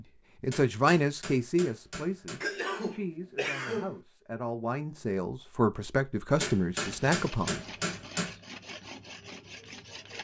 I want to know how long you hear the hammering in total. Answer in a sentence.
You can hear the hammering for 4 seconds altogether.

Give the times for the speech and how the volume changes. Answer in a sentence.
You can hear the speech from 0.0 to 7.6 s, getting quieter then louder.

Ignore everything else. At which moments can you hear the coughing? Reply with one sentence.
You can hear the coughing from 2.4 to 4.0 s.